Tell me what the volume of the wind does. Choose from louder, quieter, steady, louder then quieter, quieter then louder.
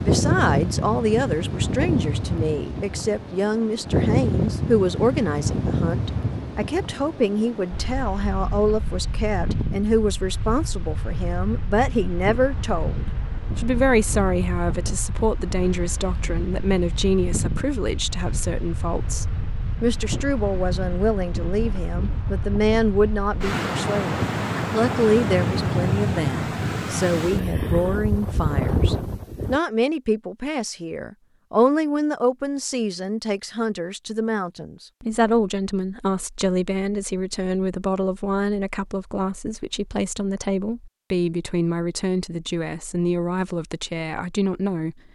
quieter then louder.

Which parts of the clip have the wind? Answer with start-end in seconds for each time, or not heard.
0.0-29.6.